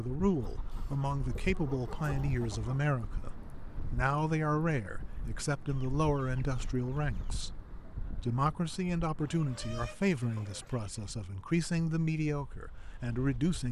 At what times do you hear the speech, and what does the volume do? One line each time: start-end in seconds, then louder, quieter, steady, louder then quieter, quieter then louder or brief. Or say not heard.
0.0-13.6 steady.